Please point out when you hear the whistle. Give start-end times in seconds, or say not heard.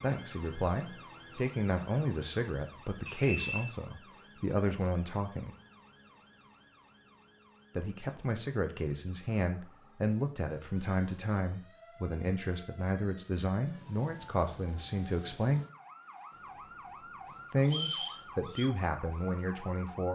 3.0-3.7, 17.6-18.7.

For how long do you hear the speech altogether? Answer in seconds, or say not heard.
16 s.